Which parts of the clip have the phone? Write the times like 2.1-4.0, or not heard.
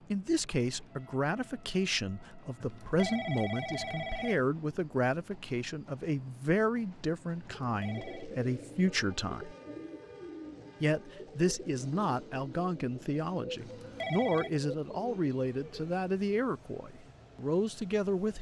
2.6-4.4, 7.7-8.3, 13.6-14.5.